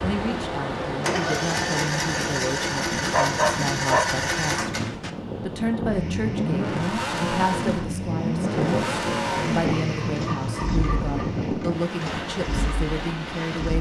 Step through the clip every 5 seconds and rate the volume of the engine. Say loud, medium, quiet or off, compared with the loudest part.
loud, loud, medium.